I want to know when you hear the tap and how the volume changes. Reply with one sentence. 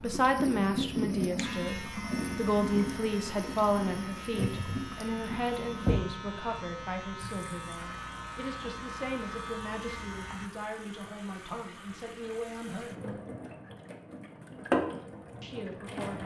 The tap can be heard from 0.0 to 16.2 s, getting quieter then louder.